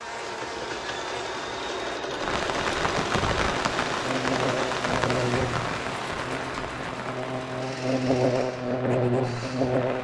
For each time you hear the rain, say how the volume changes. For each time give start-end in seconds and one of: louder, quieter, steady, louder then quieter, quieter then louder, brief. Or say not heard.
2.1-9.9 quieter.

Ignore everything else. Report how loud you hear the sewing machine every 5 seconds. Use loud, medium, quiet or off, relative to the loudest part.
loud, medium.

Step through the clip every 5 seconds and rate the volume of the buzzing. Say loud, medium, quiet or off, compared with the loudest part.
medium, loud.